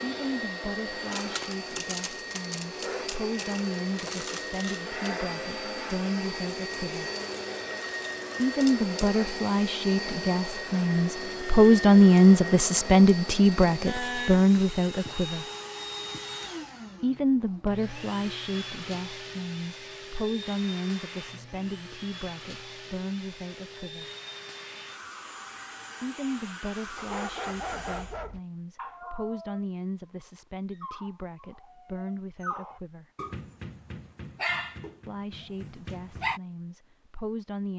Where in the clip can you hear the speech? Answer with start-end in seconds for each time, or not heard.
0.0-7.0, 8.3-15.4, 17.0-24.1, 26.0-33.0, 35.0-37.7.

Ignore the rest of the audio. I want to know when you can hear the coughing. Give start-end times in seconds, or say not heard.
not heard.